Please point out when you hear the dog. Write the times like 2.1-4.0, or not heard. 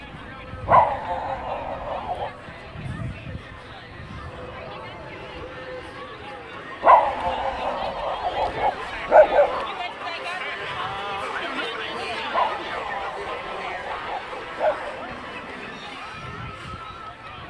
0.7-2.3, 6.8-9.7, 12.3-14.9.